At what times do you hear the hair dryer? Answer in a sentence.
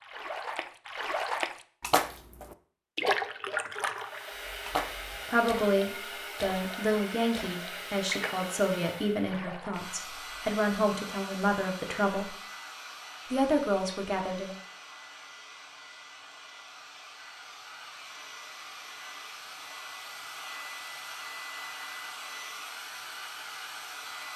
You can hear the hair dryer from 3.9 to 24.3 s.